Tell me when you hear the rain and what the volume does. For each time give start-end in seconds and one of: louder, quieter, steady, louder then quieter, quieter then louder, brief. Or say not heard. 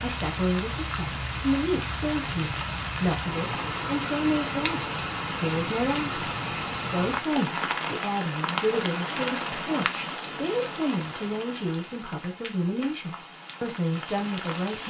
0.0-14.8 quieter.